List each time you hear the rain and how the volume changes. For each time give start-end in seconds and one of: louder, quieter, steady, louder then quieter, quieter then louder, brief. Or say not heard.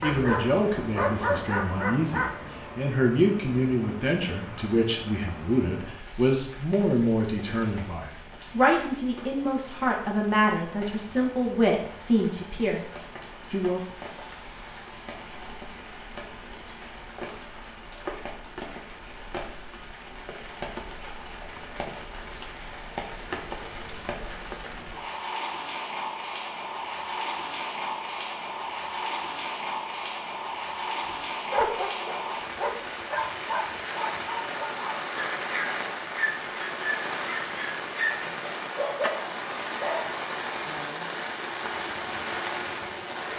0.0-43.3 louder.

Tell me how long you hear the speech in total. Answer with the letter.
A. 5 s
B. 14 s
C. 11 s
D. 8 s
B.